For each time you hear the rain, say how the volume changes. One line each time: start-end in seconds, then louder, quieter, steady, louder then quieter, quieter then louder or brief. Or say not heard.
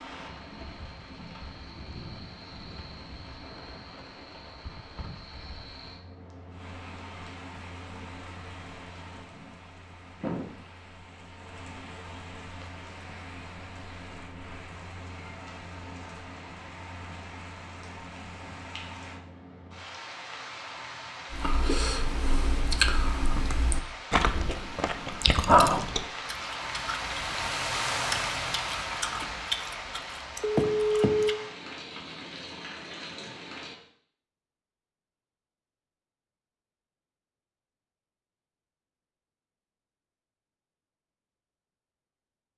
0.0-33.8 louder.